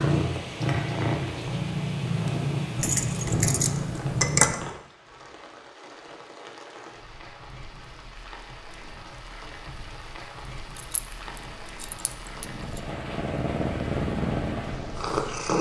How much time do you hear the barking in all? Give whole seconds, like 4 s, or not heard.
not heard.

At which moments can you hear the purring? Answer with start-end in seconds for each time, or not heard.
0.0-4.5, 11.1-15.5.